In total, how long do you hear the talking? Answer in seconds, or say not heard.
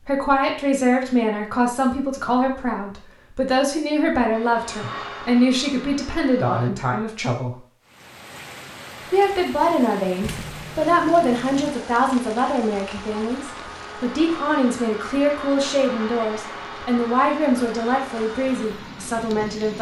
18 s.